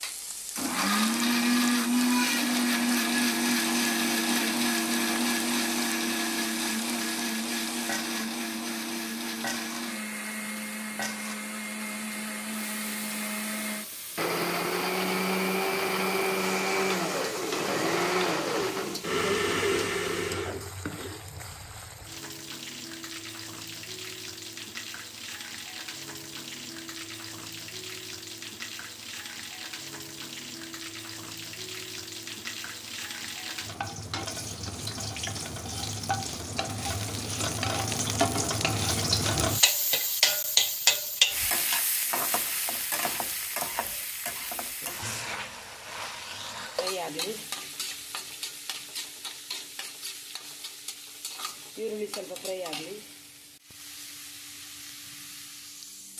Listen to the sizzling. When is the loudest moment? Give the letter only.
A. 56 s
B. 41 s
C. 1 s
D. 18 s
B.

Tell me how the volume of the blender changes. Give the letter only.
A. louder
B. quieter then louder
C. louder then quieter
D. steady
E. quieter
B.